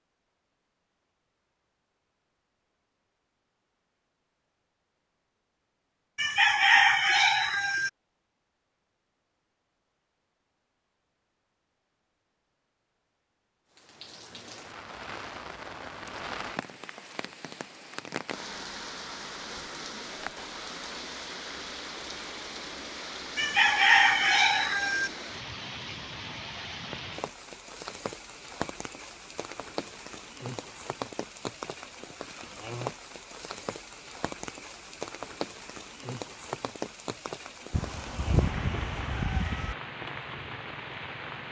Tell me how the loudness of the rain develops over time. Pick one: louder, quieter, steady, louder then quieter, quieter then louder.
steady.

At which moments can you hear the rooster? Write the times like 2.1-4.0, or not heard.
6.2-7.9, 23.4-25.1, 37.7-39.8.